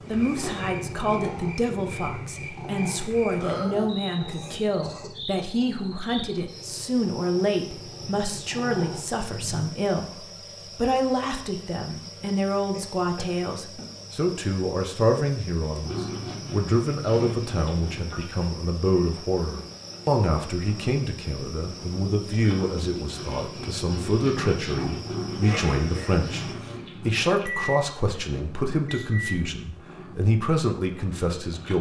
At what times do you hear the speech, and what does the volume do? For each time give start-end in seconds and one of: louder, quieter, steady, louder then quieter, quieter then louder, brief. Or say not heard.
0.1-31.7 steady.